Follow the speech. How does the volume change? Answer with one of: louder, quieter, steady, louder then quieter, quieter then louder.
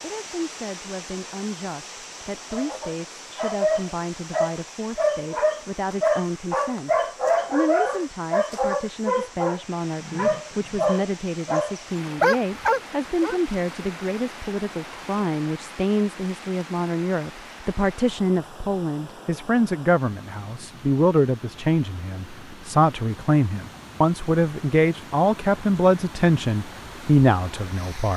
louder.